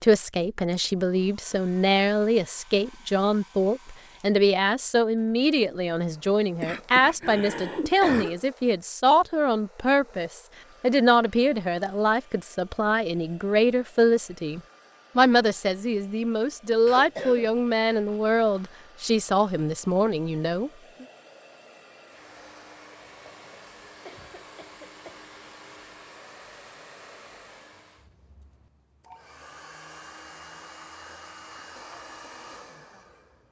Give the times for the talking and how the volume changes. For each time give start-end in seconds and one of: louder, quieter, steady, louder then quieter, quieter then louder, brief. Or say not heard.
0.0-21.1 steady.